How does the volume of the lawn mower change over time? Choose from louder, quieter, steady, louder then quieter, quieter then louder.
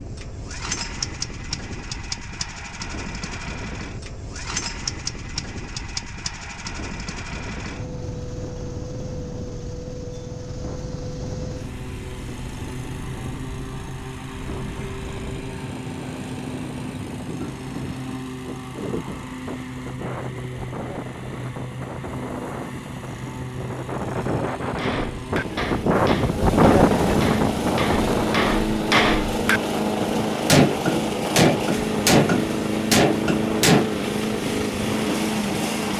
louder.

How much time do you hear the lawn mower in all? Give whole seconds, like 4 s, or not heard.
36 s.